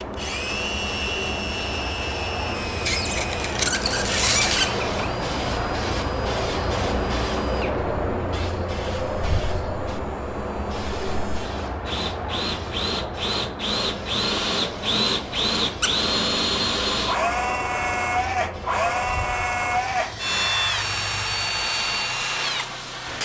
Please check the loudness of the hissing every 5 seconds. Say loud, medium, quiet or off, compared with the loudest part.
loud, loud, medium, medium, medium.